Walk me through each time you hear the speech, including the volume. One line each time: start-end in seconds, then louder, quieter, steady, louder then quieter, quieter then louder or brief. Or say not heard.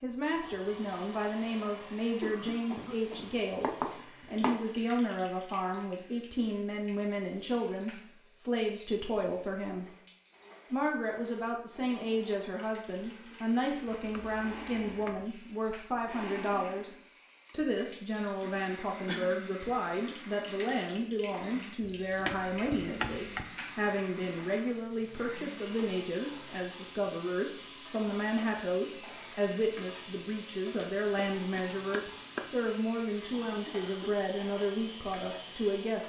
0.0-9.8 steady
10.7-36.0 steady.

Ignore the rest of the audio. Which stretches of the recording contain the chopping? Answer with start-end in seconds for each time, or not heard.
3.6-4.8, 13.8-15.2, 21.8-23.4, 30.8-32.5.